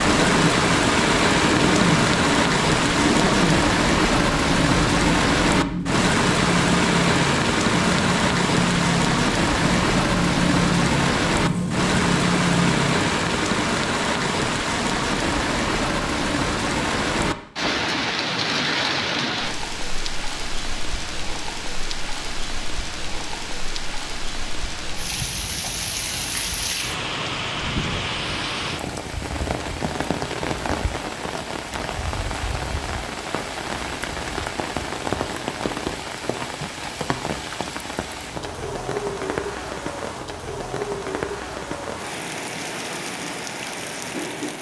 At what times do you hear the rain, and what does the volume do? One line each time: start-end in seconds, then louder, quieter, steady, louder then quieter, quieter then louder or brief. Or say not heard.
0.0-44.5 quieter.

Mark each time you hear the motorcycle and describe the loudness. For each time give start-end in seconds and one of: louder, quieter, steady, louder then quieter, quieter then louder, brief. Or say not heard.
0.0-13.2 steady.